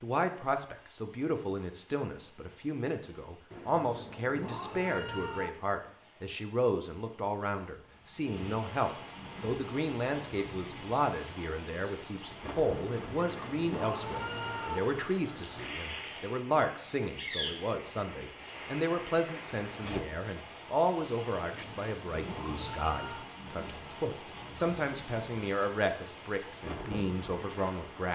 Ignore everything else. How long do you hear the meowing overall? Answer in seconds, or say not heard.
6 s.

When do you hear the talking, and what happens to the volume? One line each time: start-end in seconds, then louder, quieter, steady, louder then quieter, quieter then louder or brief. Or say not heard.
0.0-28.0 steady.